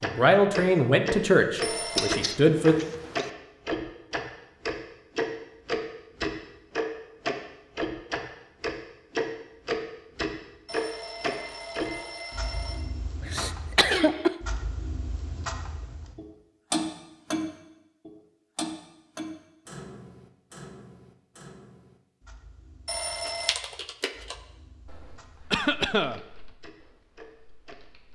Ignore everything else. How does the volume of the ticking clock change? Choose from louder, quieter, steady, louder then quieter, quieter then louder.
quieter.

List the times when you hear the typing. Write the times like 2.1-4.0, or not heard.
23.2-28.1.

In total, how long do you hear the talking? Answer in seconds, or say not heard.
3 s.